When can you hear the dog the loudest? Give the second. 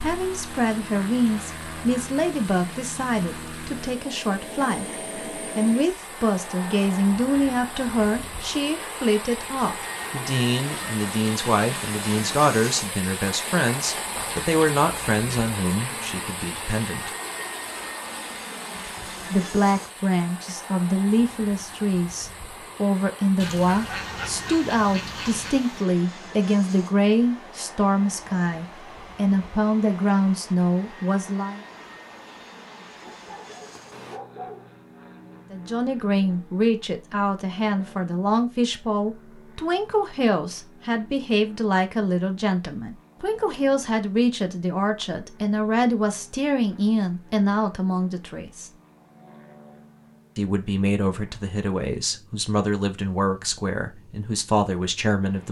34 s.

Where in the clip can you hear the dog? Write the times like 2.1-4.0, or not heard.
33.0-34.8.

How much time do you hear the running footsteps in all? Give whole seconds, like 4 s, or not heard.
not heard.